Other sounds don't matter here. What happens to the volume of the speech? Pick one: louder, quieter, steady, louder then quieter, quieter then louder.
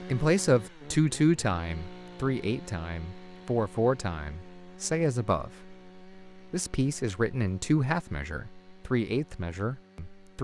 quieter.